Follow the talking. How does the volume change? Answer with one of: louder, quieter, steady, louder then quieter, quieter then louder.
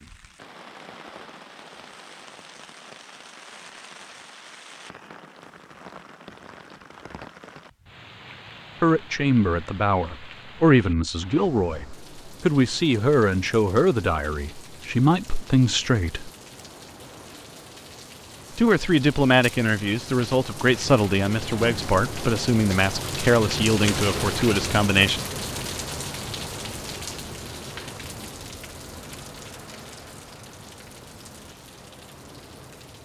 steady.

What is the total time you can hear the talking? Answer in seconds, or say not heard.
14 s.